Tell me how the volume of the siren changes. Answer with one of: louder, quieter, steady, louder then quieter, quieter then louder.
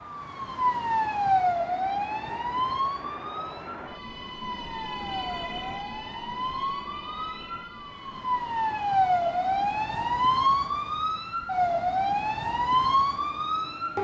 quieter then louder.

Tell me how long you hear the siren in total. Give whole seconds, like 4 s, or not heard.
14 s.